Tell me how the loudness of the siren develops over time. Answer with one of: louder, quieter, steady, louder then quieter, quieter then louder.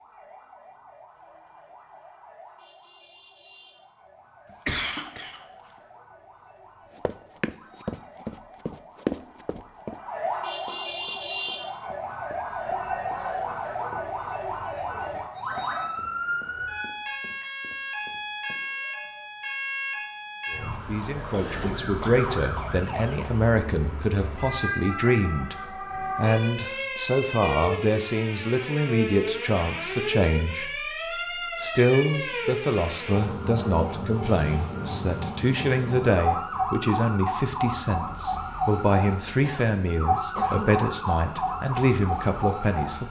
louder.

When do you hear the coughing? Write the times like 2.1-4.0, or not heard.
4.7-5.4, 21.3-22.8, 39.4-40.8.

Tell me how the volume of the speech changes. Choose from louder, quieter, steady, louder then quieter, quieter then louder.
steady.